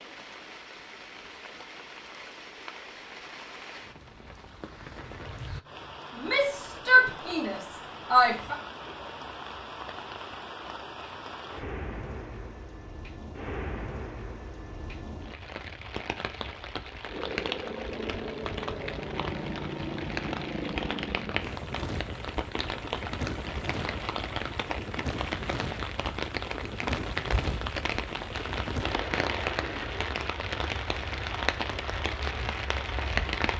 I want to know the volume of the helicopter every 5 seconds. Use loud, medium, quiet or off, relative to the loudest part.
off, off, off, loud, loud, loud, medium.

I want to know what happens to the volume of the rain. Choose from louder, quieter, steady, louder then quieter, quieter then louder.
louder.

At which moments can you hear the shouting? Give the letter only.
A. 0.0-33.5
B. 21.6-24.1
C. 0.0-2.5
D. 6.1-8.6
D.